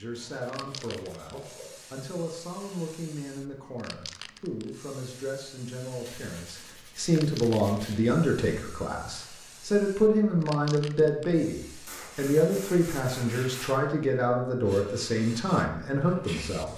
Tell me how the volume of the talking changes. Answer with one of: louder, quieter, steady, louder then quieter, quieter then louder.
louder.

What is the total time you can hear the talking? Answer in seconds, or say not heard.
17 s.